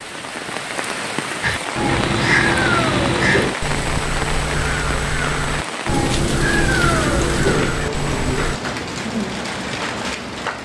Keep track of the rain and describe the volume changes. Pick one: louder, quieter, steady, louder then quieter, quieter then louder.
steady.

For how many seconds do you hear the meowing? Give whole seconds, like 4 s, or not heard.
4 s.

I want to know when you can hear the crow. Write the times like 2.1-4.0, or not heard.
1.4-8.6.